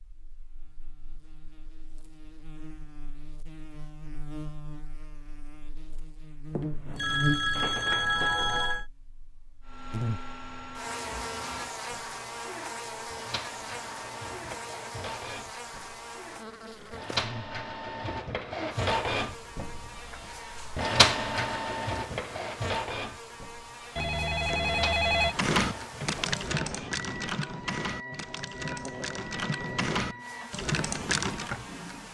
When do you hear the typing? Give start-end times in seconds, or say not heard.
25.2-31.5.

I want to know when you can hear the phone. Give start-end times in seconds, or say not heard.
6.5-8.8, 23.9-25.4.